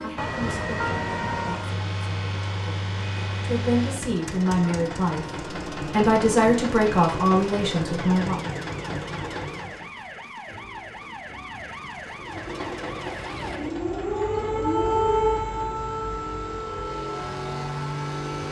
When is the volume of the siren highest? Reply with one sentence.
The loudest moment of the siren is at 15 seconds.